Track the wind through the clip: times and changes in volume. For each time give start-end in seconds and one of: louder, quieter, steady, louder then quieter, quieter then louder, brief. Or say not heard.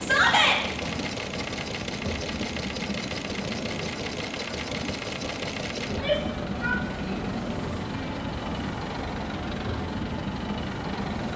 0.0-11.3 steady.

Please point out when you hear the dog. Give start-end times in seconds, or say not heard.
not heard.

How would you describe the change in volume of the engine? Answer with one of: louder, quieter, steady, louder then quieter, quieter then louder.
steady.